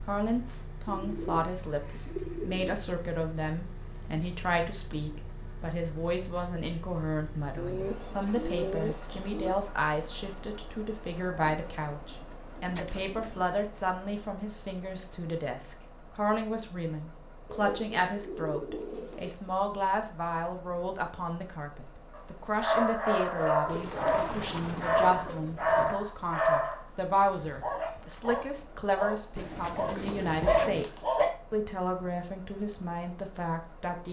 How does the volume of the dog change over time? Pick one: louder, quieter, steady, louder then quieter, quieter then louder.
quieter then louder.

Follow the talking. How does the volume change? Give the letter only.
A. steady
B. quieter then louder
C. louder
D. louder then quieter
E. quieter
A.